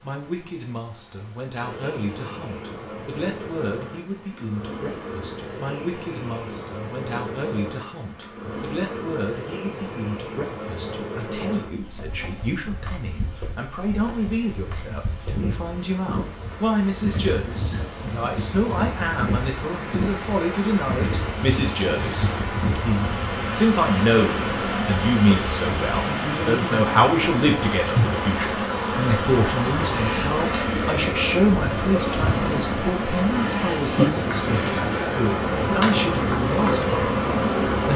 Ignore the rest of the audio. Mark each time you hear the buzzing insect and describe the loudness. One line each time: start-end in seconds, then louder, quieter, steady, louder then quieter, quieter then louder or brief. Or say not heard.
1.6-37.9 louder.